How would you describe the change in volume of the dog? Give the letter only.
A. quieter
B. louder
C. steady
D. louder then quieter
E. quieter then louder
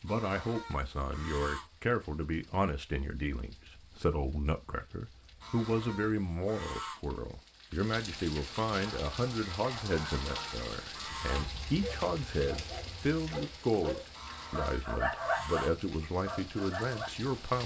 B.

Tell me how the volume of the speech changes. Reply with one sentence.
The loudness of the speech stays about the same.